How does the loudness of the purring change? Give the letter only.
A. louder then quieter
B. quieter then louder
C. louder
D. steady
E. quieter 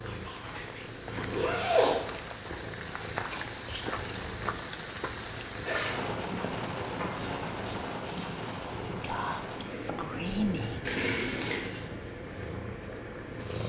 D.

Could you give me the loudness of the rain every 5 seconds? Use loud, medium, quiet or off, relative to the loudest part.
loud, loud, medium.